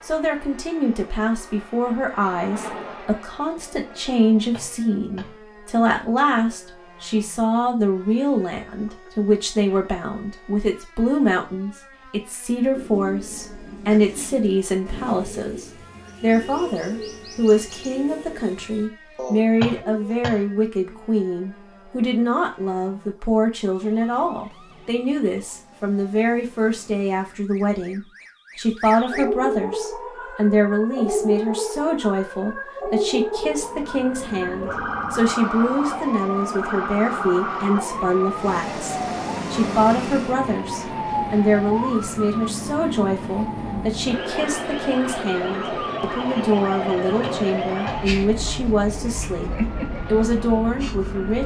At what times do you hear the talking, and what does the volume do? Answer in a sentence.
You can hear the talking from 0.0 to 51.4 s, at a steady volume.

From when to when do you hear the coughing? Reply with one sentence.
The coughing can be heard from 4.5 to 5.3 s, from 19.6 to 20.4 s and from 47.2 to 48.0 s.